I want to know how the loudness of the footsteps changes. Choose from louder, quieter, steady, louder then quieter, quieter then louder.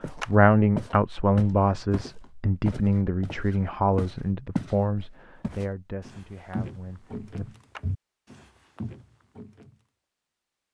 quieter.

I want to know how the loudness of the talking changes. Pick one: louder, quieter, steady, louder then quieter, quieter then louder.
quieter.